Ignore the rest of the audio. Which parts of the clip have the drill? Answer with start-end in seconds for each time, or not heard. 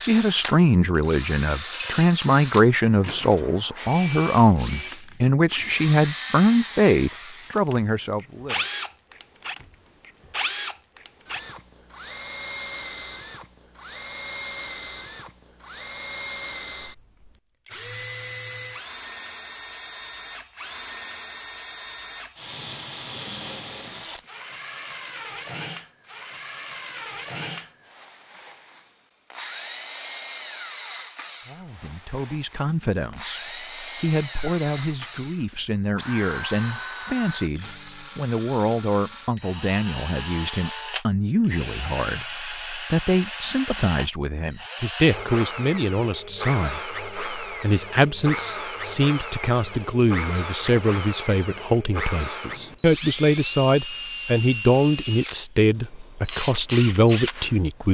0.0-57.6.